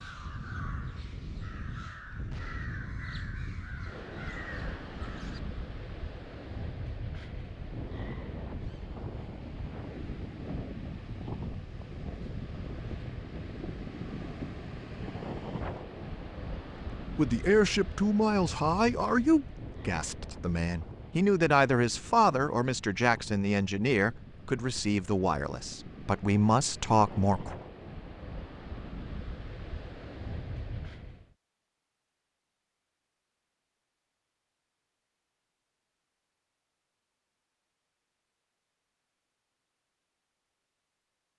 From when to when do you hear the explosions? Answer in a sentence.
The explosions can be heard from 2.3 to 2.7 s.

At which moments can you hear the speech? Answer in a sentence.
You can hear the speech from 17.1 to 27.6 s.